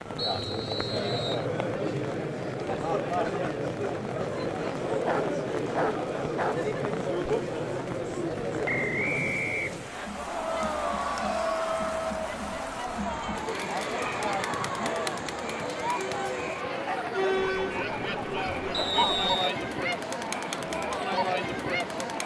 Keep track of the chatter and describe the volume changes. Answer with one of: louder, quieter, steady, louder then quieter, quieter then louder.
steady.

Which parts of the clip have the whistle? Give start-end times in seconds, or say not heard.
0.1-1.4, 8.7-10.1, 18.7-19.6.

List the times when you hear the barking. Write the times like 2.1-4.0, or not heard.
4.9-6.7, 17.4-19.2.